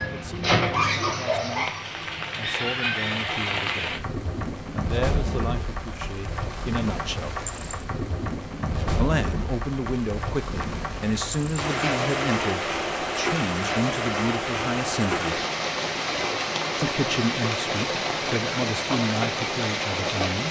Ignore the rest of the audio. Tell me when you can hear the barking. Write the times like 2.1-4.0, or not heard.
0.0-3.1.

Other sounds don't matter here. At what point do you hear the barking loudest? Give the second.
1 s.